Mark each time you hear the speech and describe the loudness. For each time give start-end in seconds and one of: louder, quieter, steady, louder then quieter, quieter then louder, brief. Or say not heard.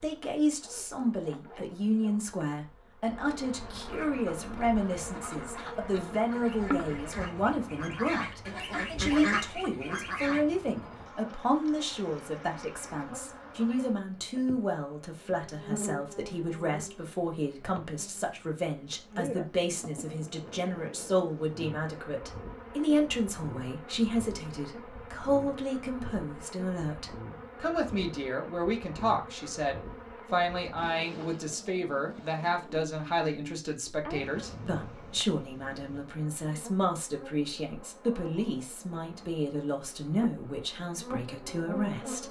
0.0-42.2 steady.